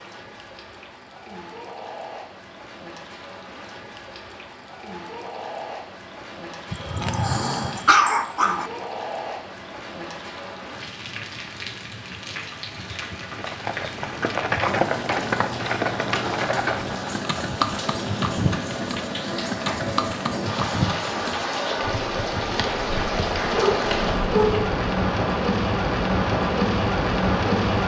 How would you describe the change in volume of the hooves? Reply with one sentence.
The loudness of the hooves goes down.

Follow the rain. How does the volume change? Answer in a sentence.
The loudness of the rain goes up.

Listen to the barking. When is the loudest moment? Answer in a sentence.
The volume of the barking peaks at 8 seconds.